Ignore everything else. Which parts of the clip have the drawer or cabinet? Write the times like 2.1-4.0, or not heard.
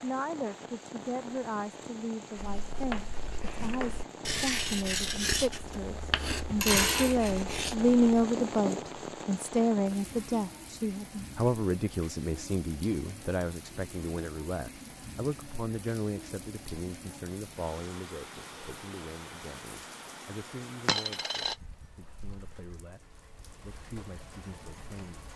not heard.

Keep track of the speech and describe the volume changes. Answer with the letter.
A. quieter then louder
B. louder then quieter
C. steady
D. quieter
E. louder
B.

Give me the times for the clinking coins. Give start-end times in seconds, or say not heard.
6.5-7.2, 20.9-21.6.